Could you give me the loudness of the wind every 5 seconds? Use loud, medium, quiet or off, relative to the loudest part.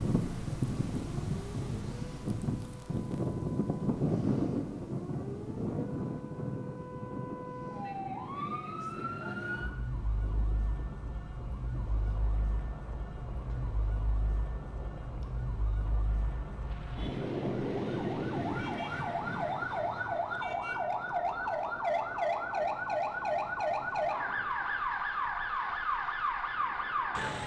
loud, medium, quiet, quiet, quiet, quiet.